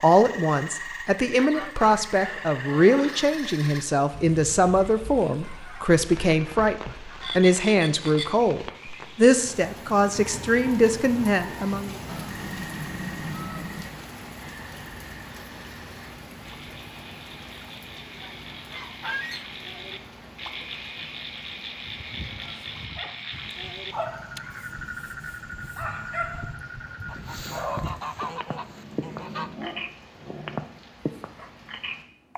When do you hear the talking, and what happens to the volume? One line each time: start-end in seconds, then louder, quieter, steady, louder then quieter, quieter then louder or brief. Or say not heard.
0.0-11.9 steady.